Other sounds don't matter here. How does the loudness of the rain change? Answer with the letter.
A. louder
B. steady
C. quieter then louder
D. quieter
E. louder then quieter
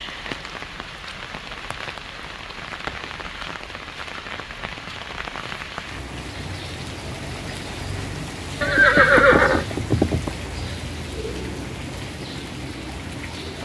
B.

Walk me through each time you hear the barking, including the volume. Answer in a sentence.
You can't hear the barking here.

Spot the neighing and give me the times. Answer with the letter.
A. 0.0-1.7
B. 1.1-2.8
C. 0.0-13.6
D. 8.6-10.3
D.